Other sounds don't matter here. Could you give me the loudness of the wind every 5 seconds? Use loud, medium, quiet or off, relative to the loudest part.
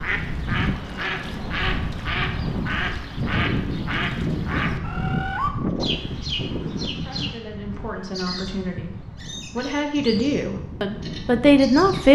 loud, loud, medium.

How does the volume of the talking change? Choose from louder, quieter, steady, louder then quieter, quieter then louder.
louder.